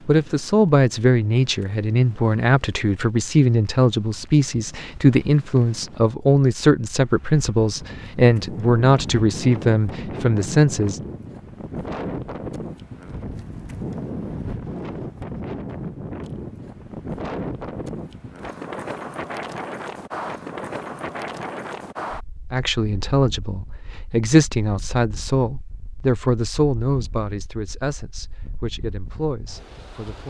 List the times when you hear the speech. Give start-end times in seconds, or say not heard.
0.1-11.0, 22.5-30.2.